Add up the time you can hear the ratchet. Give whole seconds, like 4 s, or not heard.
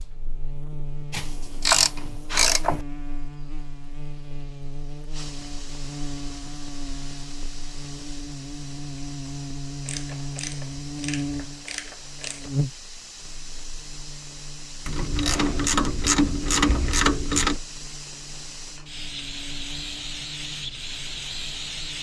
7 s.